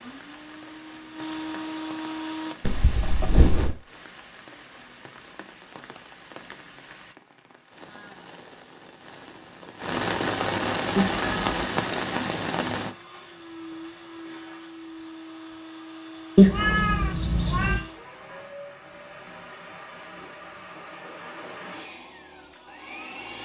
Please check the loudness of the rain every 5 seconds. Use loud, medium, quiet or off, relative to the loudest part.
quiet, quiet, loud, off, off.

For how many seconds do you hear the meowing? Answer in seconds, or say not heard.
3 s.